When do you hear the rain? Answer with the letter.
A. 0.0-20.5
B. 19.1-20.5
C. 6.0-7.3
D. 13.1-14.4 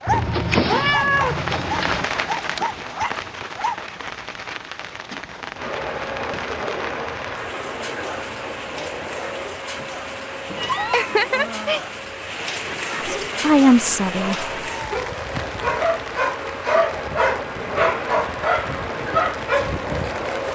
A.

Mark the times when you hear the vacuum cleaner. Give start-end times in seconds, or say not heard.
5.5-20.5.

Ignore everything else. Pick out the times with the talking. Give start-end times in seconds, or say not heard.
13.1-14.4.